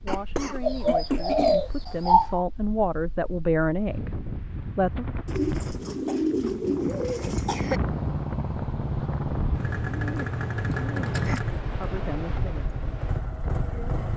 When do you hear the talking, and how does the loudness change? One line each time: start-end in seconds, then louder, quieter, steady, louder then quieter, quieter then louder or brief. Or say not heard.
0.1-5.0 louder then quieter
11.6-12.7 brief
13.7-14.1 brief.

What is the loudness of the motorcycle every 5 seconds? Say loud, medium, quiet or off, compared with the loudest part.
off, loud, loud.